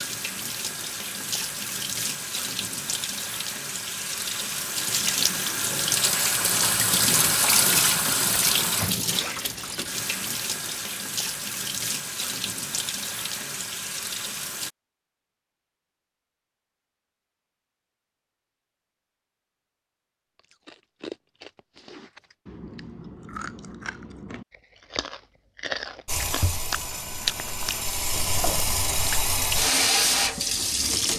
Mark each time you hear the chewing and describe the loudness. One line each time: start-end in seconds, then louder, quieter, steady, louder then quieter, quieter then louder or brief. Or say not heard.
20.4-28.6 louder.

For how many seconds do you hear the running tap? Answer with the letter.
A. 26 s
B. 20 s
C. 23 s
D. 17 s
B.